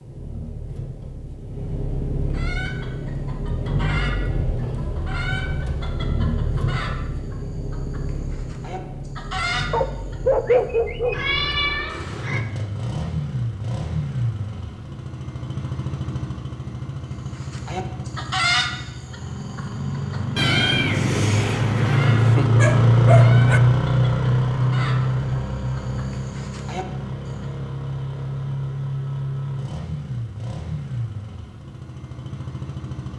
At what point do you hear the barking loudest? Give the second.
10 s.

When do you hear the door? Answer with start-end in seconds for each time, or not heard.
not heard.